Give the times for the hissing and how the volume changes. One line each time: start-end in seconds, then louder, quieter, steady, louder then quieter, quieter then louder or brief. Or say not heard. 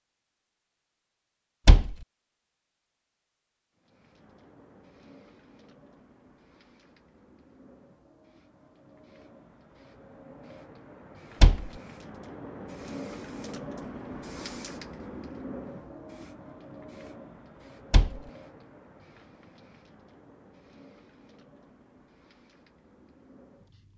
3.8-23.9 louder then quieter.